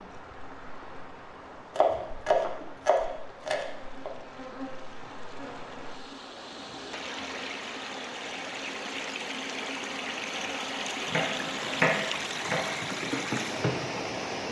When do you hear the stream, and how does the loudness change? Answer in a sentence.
You can hear the stream from 0.0 to 14.4 s, getting louder.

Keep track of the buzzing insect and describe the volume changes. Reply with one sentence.
The volume of the buzzing insect goes up.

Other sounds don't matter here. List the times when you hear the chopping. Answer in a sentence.
You can hear the chopping from 1.8 to 4.1 s and from 11.1 to 12.8 s.